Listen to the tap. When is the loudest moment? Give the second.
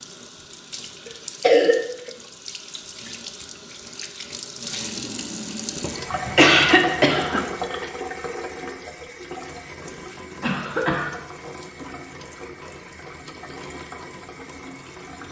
7 s.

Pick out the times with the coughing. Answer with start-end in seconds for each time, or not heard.
1.1-2.1, 6.1-7.8, 10.4-11.2.